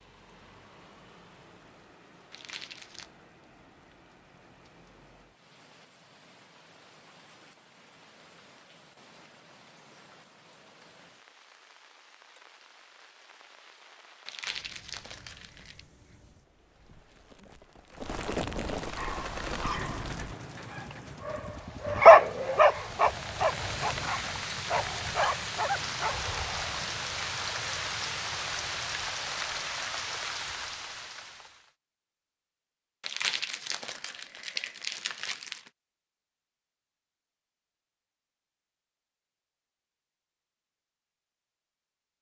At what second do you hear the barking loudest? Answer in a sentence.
The volume of the barking peaks at 22 seconds.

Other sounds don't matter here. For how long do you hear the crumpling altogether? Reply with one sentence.
The crumpling can be heard for 5 seconds in total.